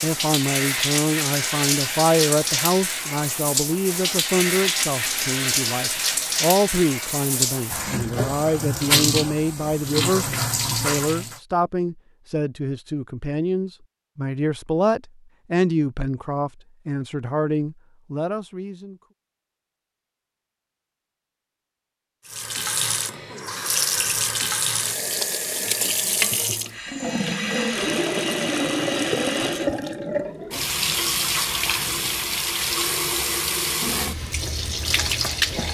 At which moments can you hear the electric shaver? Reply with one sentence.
The electric shaver can't be heard in this clip.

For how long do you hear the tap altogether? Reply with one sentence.
You can hear the tap for 25 seconds altogether.